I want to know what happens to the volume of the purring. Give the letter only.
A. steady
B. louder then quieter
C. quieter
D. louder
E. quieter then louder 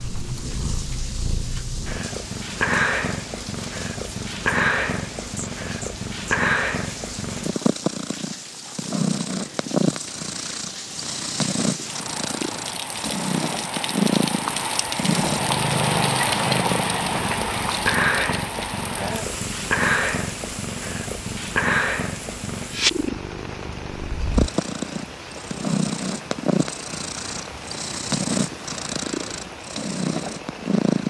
A.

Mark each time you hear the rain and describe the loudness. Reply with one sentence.
You can hear the rain from 0.0 to 31.0 s, getting louder then quieter.